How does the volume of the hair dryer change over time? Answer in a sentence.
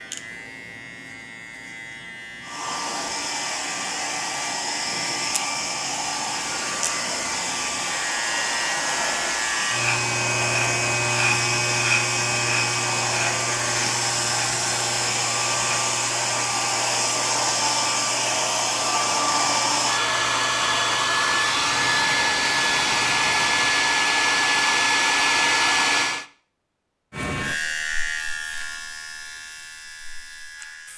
The loudness of the hair dryer goes up.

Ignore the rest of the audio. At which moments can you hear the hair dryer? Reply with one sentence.
You can hear the hair dryer from 2.4 to 26.2 s.